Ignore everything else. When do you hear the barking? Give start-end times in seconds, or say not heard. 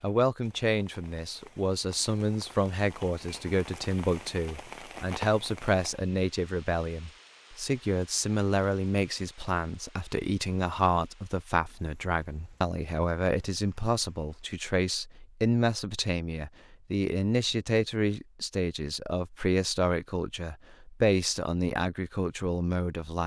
not heard.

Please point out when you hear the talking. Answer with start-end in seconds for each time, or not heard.
0.0-23.2.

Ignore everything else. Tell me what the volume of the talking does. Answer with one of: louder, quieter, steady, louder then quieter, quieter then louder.
steady.